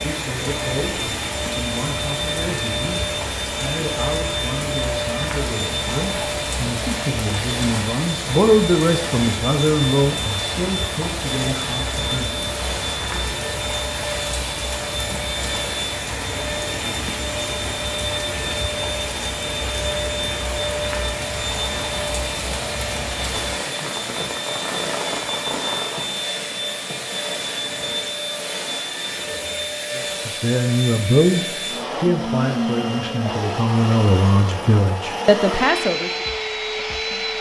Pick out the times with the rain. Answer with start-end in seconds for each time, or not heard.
0.0-26.2.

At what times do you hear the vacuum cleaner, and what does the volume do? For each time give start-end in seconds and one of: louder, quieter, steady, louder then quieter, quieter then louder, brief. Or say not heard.
0.0-37.3 steady.